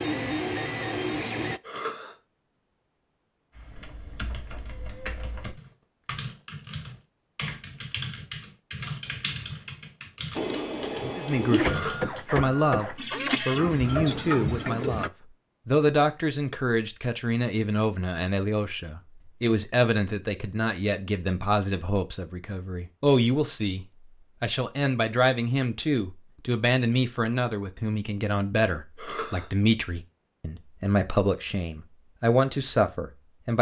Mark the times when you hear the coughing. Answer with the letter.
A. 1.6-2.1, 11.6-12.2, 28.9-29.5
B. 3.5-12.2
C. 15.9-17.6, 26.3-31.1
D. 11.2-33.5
A.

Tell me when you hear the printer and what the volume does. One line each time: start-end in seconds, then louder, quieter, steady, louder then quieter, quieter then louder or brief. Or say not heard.
0.0-1.6 brief
10.3-15.1 steady.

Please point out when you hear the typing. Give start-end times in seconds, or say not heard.
3.5-12.2.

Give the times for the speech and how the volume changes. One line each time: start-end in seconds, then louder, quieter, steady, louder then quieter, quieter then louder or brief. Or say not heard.
11.2-33.5 steady.